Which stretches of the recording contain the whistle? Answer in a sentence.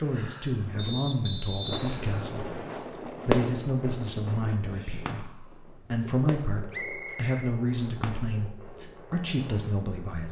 The whistle can be heard from 0.8 to 2.8 s and from 6.7 to 7.5 s.